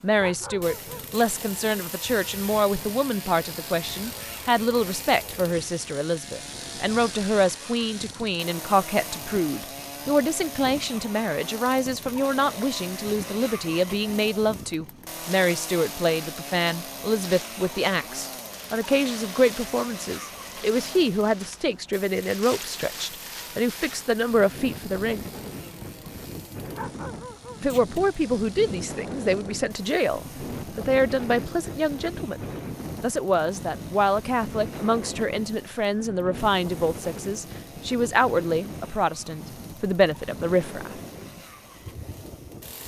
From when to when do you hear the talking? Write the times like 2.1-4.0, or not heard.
0.0-25.3, 27.6-32.4, 33.0-41.0.